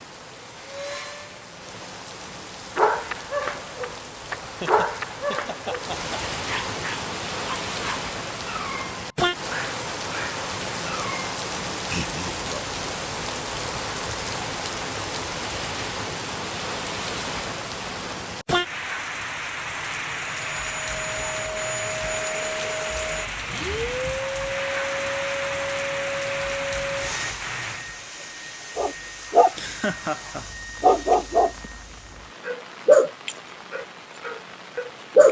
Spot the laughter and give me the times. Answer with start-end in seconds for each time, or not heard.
4.6-6.2, 11.8-12.8, 29.6-30.4.